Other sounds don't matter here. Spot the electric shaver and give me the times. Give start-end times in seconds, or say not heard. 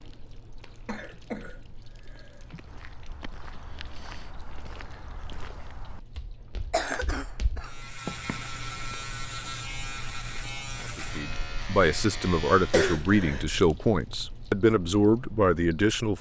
7.6-12.9.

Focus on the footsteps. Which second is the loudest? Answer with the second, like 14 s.
8 s.